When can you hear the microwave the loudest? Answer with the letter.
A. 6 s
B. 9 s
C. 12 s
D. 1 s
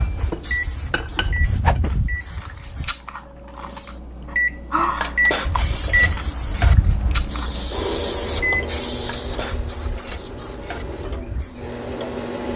A.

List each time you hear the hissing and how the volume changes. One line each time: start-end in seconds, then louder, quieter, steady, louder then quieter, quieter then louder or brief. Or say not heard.
0.0-3.0 brief
5.5-12.5 quieter.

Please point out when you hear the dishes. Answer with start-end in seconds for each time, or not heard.
0.1-1.8, 4.9-6.8, 8.9-10.8.